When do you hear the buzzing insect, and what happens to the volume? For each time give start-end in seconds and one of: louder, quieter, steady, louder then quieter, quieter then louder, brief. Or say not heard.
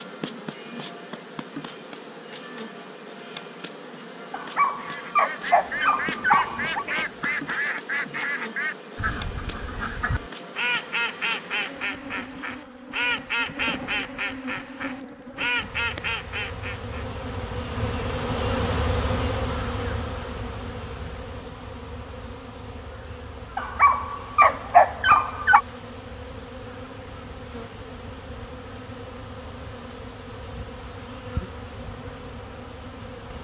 0.0-33.3 louder then quieter.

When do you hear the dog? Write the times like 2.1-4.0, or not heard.
4.3-6.8, 23.6-25.6.